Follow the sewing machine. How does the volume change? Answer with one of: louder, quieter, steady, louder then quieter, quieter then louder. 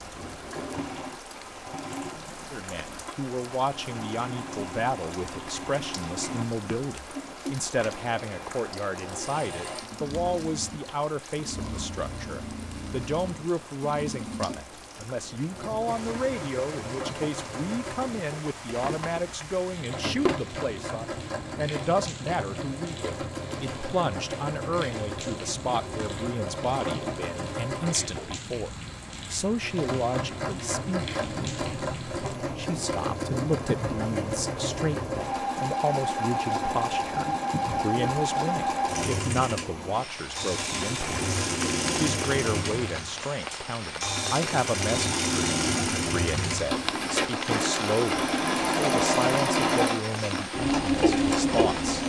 louder.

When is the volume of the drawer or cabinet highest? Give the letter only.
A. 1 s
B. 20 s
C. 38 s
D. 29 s
B.